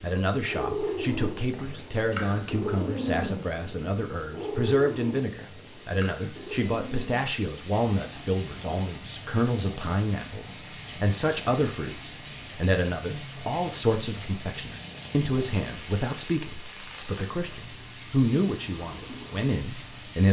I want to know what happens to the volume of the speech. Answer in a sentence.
The volume of the speech stays about the same.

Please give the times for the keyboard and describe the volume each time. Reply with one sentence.
You can't hear the keyboard here.